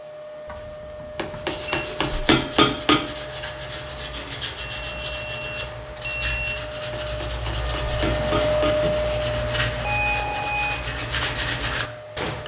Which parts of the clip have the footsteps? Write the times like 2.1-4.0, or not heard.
not heard.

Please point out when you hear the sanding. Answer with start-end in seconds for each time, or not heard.
1.2-12.4.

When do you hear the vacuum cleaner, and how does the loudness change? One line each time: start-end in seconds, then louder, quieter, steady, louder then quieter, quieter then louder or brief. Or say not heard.
0.0-12.4 louder then quieter.